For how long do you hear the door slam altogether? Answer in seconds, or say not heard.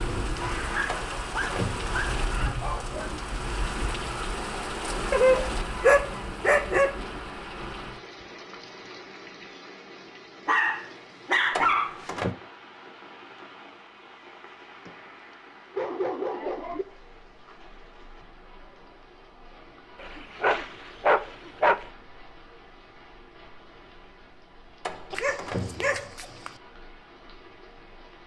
3 s.